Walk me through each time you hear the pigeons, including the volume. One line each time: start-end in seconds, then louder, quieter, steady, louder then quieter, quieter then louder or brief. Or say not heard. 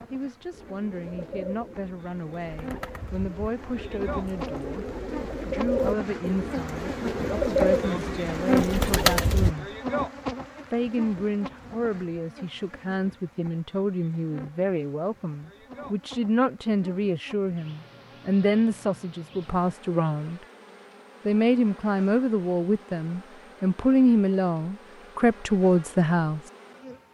0.5-9.6 louder.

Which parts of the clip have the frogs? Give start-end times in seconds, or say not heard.
not heard.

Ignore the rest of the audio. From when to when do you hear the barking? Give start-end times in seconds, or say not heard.
not heard.